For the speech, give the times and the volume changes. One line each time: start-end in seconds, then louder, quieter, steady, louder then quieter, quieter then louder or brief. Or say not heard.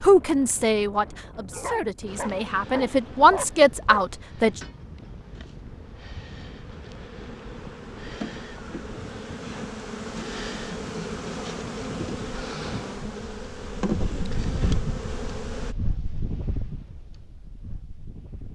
0.0-4.6 quieter then louder.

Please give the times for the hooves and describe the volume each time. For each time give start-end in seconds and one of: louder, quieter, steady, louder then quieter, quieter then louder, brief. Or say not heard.
not heard.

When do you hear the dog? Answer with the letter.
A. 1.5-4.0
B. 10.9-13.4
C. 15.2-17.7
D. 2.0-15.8
A.